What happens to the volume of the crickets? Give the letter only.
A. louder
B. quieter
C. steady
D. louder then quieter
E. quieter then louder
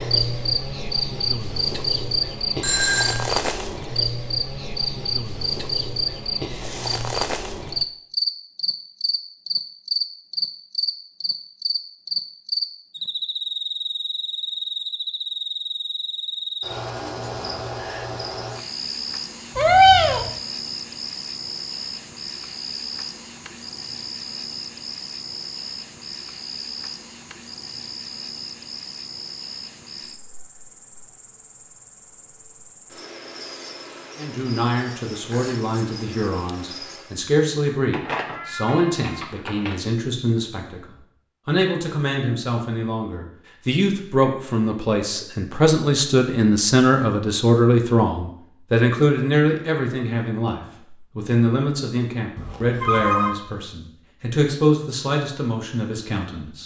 B.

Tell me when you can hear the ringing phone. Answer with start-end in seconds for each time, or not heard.
2.6-3.3, 52.4-53.4.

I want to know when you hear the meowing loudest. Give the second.
20 s.